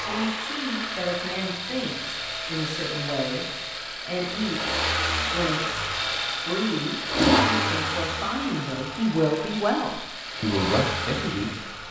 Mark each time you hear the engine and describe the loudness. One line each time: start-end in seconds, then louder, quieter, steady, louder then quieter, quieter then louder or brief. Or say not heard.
0.0-11.8 louder then quieter.